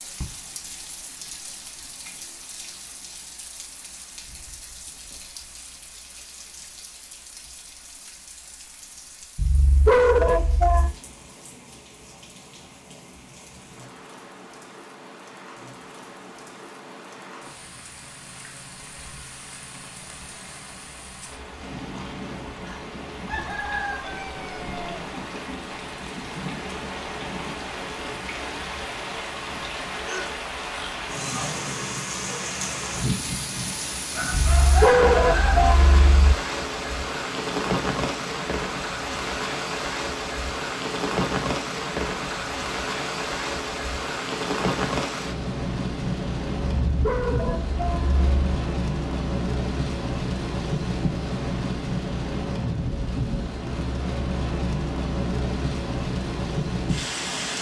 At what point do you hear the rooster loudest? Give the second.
35 s.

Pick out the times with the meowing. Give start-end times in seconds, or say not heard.
not heard.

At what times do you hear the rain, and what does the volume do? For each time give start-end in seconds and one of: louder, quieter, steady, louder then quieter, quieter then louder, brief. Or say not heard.
0.0-57.5 louder.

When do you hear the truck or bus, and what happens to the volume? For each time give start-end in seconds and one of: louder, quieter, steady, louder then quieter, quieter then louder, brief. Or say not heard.
not heard.